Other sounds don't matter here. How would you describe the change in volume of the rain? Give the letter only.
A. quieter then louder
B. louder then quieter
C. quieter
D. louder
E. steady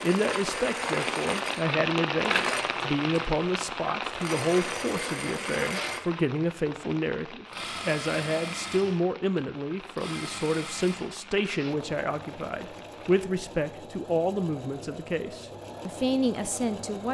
C.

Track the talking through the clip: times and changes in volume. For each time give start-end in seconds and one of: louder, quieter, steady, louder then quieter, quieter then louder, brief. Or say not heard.
0.0-17.0 steady.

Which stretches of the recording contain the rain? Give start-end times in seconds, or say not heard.
0.0-13.2.